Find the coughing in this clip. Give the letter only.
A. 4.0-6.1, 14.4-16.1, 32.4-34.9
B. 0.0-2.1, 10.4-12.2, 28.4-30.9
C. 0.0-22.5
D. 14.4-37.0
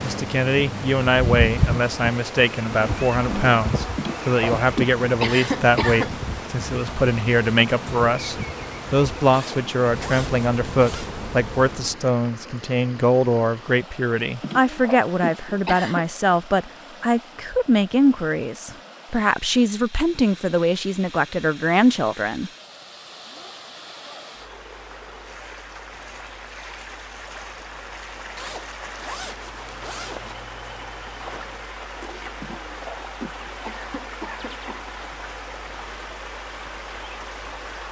A.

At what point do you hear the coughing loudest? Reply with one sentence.
The loudest moment of the coughing is at 5 seconds.